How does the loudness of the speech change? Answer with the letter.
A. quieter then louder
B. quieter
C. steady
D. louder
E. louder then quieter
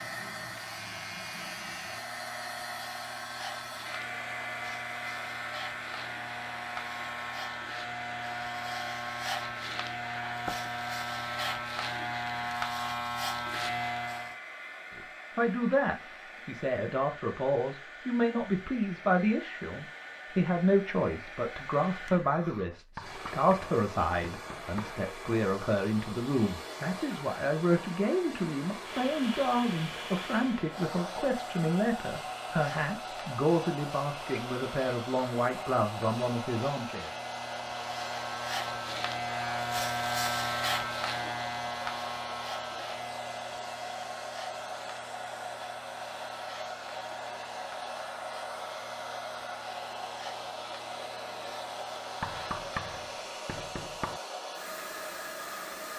C.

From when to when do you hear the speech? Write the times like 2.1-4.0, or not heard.
14.9-37.1.